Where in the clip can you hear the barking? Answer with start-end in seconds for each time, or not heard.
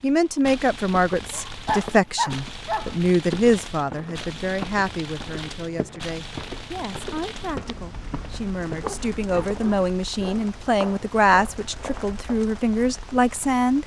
1.3-2.9, 8.8-10.4.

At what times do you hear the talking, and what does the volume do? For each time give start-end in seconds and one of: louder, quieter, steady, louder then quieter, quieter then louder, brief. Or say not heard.
0.0-13.8 quieter then louder.